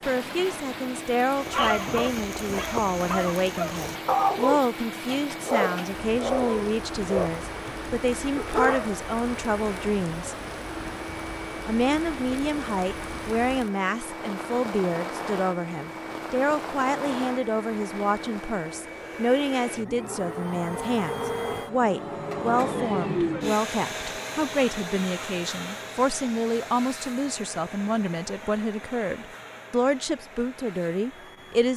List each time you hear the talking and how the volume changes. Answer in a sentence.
The talking can be heard from 0.1 to 10.3 s, at a steady volume; and from 11.7 to 31.7 s, at a steady volume.